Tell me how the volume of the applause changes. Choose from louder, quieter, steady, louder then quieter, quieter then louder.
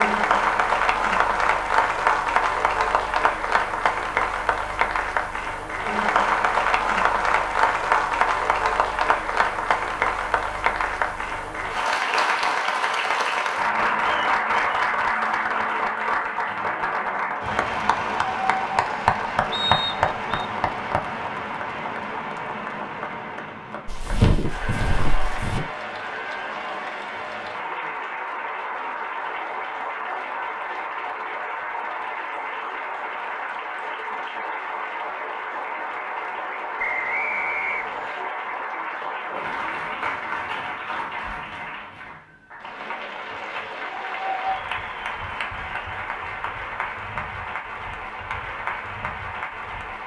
quieter.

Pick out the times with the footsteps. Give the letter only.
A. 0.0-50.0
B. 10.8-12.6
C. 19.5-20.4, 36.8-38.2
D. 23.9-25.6
D.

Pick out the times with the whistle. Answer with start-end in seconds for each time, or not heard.
19.5-20.4, 36.8-38.2.